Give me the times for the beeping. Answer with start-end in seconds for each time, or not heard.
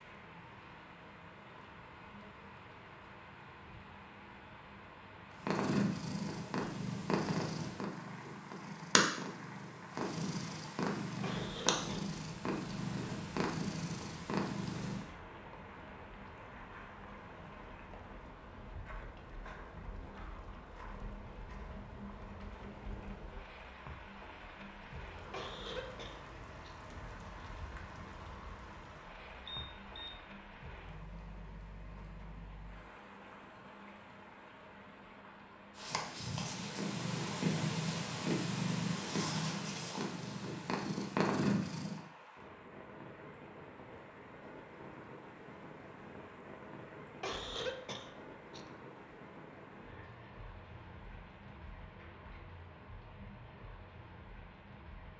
29.4-30.2.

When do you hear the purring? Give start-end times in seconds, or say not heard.
5.4-15.1, 35.8-42.0.